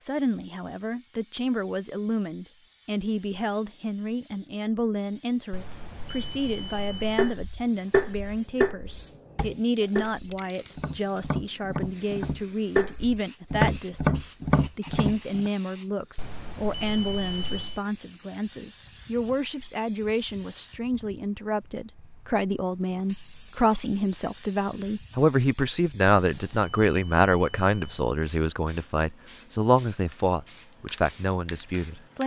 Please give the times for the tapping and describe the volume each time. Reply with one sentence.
The tapping can be heard from 7.2 to 15.5 s, getting quieter then louder.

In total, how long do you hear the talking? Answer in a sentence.
You can hear the talking for 32 seconds altogether.